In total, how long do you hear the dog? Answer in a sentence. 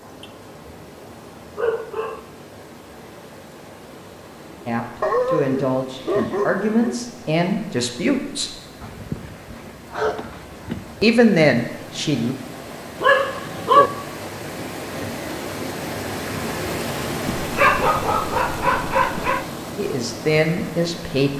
You can hear the dog for 8 seconds altogether.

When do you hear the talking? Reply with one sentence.
You can hear the talking from 4.7 to 8.6 s, from 11.0 to 12.3 s and from 19.8 to 21.3 s.